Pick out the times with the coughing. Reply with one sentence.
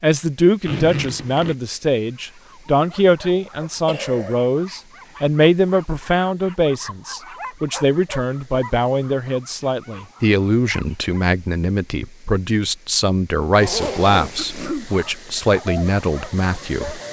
You can hear the coughing from 3.4 to 4.3 s and from 14.3 to 14.9 s.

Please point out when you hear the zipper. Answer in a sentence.
The zipper can be heard from 0.7 to 1.6 s and from 13.6 to 14.8 s.